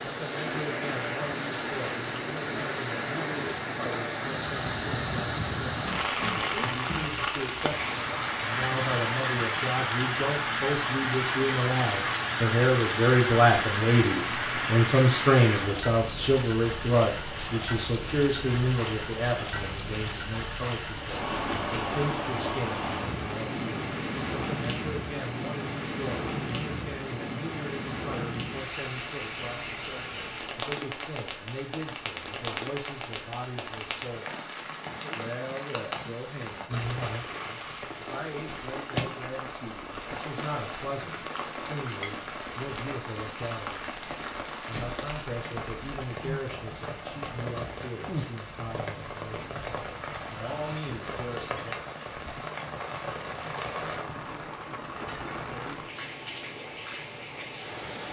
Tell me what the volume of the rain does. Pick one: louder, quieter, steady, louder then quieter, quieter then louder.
quieter.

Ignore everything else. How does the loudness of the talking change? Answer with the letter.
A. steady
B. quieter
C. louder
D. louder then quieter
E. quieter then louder
D.